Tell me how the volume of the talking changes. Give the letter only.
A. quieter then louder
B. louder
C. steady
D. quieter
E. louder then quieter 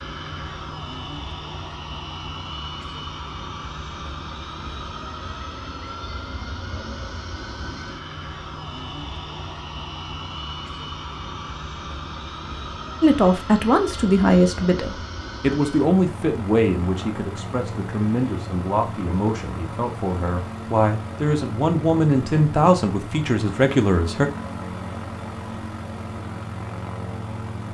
A.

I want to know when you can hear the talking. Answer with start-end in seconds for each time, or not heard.
13.0-24.3.